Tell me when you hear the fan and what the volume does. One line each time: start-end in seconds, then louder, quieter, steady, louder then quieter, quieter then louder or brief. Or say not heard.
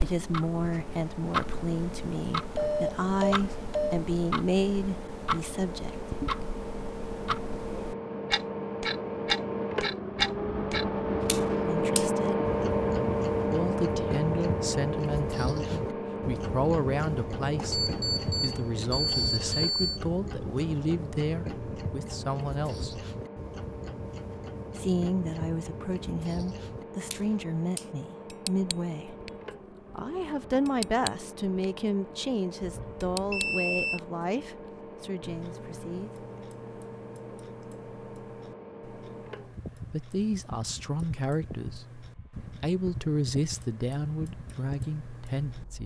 0.0-45.8 louder then quieter.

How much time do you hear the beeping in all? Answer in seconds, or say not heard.
5 s.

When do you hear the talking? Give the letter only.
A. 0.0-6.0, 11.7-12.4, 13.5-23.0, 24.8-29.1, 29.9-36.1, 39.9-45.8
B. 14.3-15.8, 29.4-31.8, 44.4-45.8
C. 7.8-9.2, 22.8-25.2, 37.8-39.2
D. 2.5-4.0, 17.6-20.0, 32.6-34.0
A.